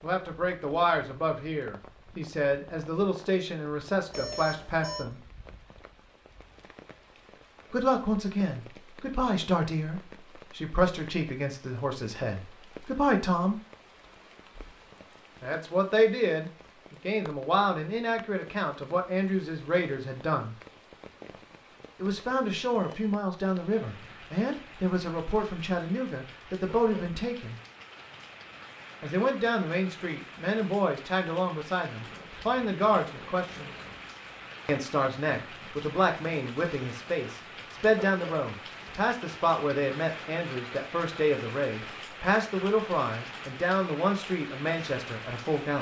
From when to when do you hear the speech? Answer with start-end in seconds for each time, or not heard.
0.0-5.2, 7.7-13.6, 15.4-20.6, 22.0-27.6, 29.0-33.8, 34.6-45.7.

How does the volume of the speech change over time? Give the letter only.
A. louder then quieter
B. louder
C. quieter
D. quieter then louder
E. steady
E.